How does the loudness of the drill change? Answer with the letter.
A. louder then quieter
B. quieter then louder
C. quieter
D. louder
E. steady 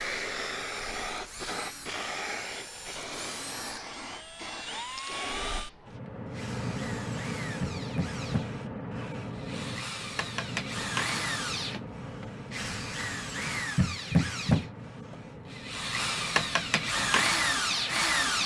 D.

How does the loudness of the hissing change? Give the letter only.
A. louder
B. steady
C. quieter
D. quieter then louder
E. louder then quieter
C.